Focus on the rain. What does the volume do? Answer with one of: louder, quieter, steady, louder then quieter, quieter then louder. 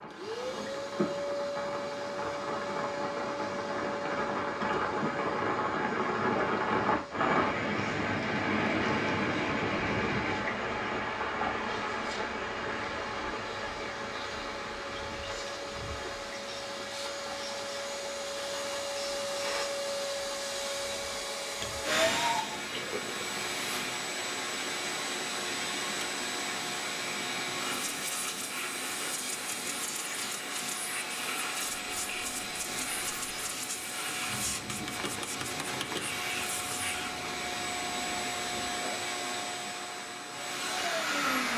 quieter.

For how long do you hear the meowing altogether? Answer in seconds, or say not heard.
2 s.